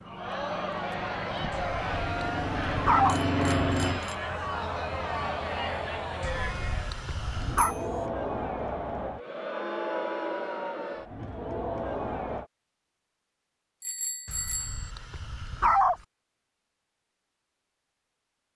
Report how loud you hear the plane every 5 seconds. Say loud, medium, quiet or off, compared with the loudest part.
loud, medium, off, off.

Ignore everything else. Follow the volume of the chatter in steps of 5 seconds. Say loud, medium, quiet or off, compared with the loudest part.
loud, loud, loud, off.